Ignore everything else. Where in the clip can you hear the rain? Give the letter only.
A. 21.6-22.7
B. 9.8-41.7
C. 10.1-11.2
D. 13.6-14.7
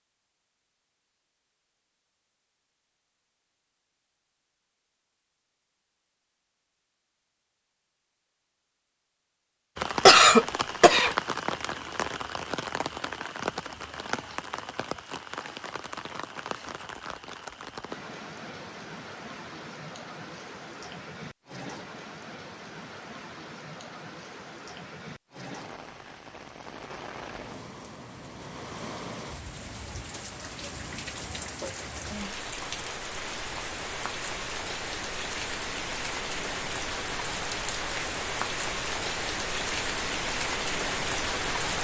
B.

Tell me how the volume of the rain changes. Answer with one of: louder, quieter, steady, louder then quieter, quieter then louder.
quieter then louder.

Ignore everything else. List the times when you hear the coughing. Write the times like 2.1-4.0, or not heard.
10.1-11.2.